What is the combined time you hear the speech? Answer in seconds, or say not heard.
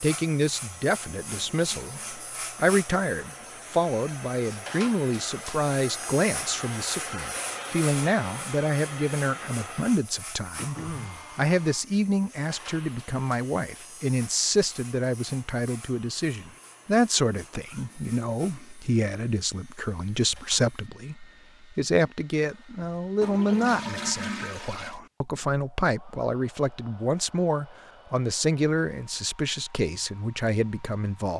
31 s.